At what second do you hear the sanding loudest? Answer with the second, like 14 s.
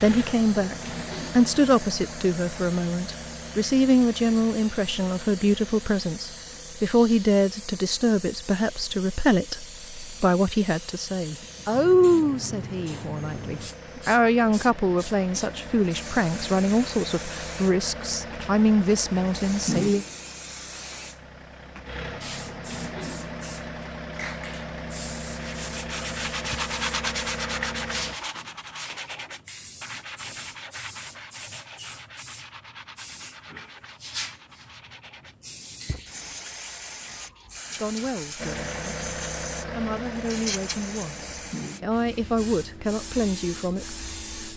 27 s.